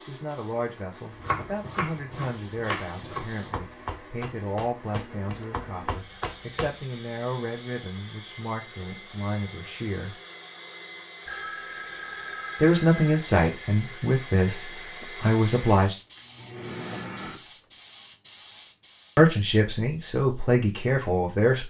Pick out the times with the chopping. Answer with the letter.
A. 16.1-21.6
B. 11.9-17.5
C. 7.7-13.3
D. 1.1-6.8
D.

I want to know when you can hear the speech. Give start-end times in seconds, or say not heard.
0.1-10.2, 12.6-15.9, 19.1-21.6.